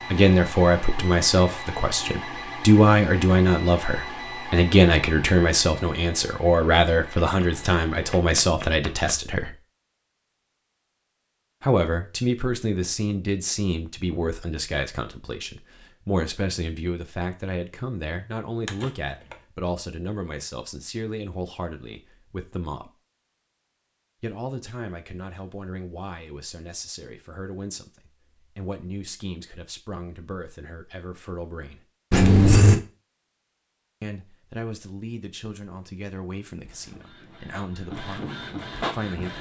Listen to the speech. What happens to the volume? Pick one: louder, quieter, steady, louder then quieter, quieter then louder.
quieter.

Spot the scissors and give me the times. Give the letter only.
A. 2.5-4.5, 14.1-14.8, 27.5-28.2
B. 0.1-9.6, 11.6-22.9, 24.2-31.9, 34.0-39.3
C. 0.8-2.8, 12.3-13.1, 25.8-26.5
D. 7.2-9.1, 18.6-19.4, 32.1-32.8
D.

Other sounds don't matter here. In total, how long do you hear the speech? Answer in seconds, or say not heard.
34 s.